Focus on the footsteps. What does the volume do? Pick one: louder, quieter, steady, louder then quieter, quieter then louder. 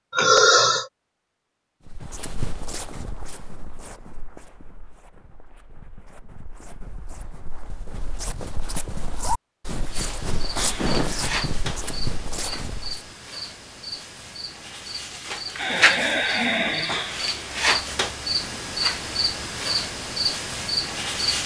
quieter then louder.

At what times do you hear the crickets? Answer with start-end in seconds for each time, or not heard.
9.8-21.4.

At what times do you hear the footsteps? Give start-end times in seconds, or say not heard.
1.9-13.1.